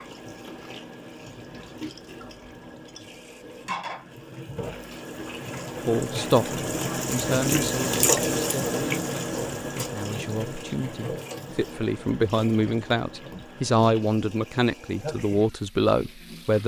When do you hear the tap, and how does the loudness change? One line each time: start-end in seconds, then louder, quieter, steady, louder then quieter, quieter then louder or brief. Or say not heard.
0.0-16.6 louder then quieter.